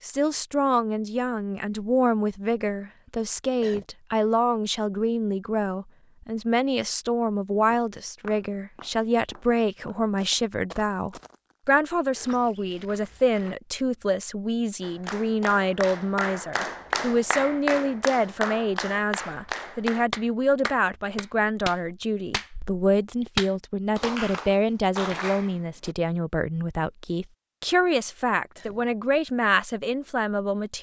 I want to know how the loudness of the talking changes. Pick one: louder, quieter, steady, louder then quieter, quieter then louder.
steady.